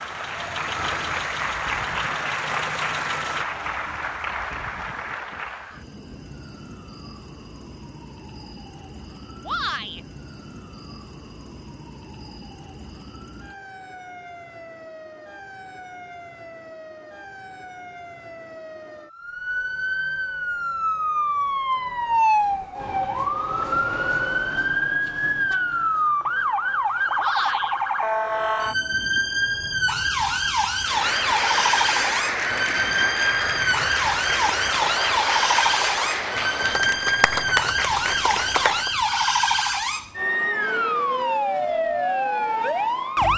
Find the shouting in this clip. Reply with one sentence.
You can hear the shouting from 9.4 to 10.0 s and from 27.1 to 27.8 s.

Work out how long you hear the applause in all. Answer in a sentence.
You can hear the applause for 14 seconds altogether.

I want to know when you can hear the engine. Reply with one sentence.
You can hear the engine from 0.0 to 3.5 s.